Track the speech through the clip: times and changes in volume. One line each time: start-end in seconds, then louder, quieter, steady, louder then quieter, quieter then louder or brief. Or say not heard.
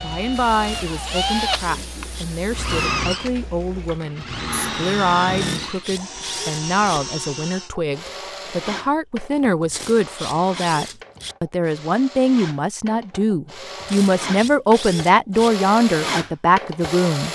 0.0-17.2 louder.